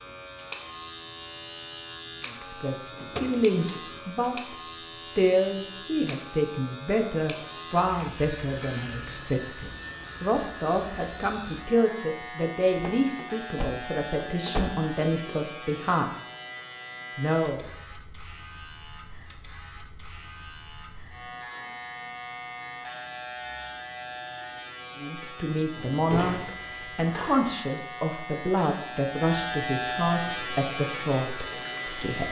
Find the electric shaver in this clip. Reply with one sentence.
You can hear the electric shaver from 0.0 to 32.2 s.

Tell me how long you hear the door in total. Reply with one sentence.
You can hear the door for 5 seconds altogether.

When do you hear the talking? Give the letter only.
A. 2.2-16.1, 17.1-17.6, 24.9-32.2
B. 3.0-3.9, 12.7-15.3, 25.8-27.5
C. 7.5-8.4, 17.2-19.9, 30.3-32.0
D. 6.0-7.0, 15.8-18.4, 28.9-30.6
A.